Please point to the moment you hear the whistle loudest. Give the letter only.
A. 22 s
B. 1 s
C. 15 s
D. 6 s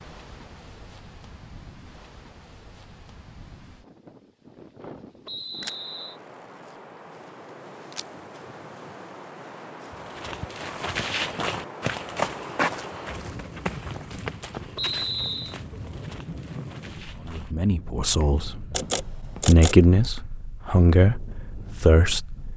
C.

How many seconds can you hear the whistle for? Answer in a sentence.
The whistle can be heard for 2 seconds in total.